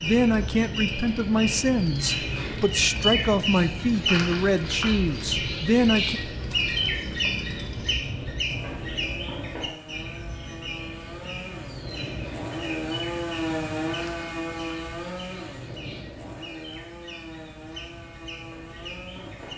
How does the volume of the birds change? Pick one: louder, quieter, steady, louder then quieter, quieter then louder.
quieter.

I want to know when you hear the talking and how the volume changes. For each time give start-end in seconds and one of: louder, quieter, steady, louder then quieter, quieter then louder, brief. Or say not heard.
0.0-6.2 steady.